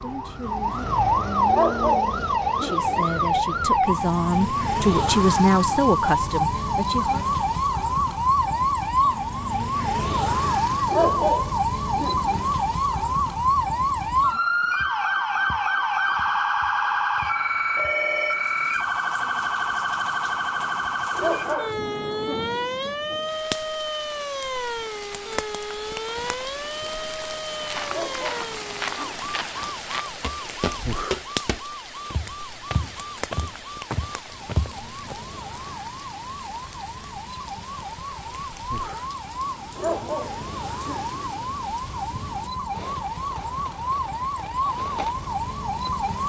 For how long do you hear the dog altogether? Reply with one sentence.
The dog can be heard for 8 seconds in total.